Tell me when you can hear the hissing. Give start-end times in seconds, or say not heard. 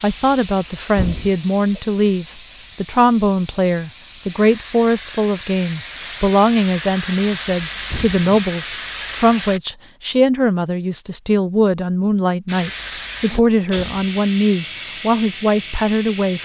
0.0-9.6, 12.4-16.3.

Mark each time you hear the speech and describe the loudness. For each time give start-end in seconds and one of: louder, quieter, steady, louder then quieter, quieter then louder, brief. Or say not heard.
0.0-16.3 steady.